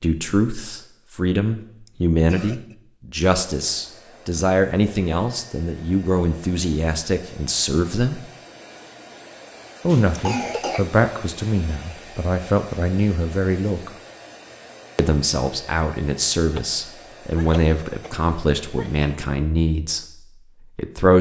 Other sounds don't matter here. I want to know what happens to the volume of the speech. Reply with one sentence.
The volume of the speech stays about the same.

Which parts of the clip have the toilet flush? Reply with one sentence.
The toilet flush can't be heard in this clip.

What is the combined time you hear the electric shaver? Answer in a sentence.
You can't hear the electric shaver here.